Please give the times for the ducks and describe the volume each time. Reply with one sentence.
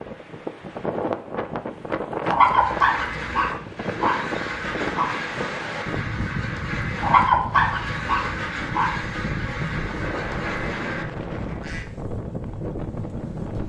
The ducks can be heard from 2.5 to 11.8 s, at a steady volume.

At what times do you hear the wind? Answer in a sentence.
The wind can be heard from 0.0 to 13.6 s.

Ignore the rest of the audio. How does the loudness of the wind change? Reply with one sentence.
The loudness of the wind stays about the same.